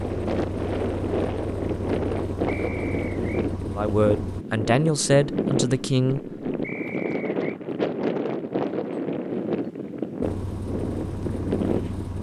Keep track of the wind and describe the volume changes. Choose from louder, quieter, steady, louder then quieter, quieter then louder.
steady.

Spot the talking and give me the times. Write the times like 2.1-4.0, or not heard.
3.8-6.2.